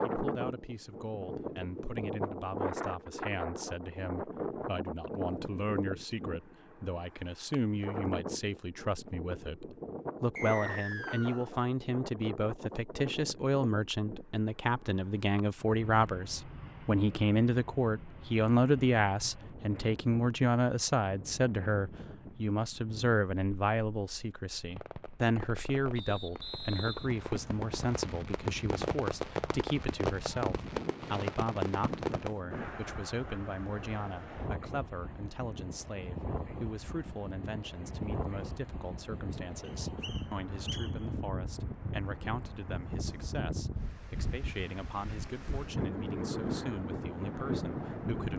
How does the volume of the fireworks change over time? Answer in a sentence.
The loudness of the fireworks goes up.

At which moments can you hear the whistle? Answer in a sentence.
You can hear the whistle from 10.3 to 11.4 s, from 25.9 to 27.9 s and from 39.6 to 40.9 s.